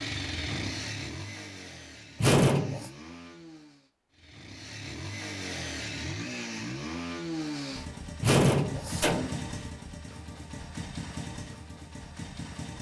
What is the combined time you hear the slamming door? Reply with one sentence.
You can hear the slamming door for 2 seconds altogether.